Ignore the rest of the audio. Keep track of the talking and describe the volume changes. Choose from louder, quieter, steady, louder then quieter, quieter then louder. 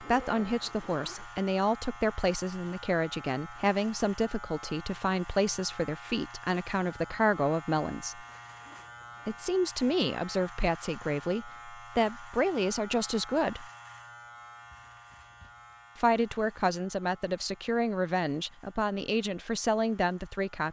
steady.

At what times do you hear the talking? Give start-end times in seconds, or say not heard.
0.0-8.2, 9.2-13.7, 15.9-20.6.